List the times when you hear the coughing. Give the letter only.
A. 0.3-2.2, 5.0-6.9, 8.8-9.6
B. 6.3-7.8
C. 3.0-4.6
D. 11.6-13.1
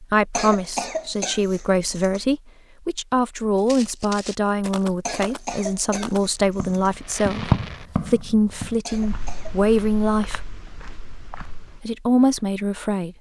A.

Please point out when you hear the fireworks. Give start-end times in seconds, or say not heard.
6.3-7.8.